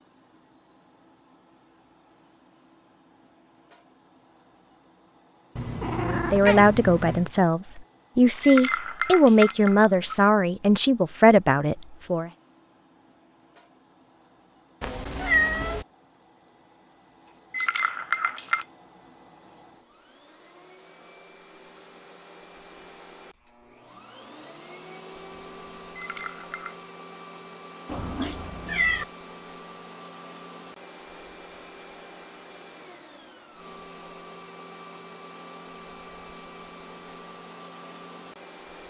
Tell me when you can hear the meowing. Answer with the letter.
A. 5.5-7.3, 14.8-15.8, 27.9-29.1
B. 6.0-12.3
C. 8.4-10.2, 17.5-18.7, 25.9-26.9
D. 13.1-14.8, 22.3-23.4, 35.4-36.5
A.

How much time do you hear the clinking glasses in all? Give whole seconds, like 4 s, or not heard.
4 s.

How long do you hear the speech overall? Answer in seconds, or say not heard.
6 s.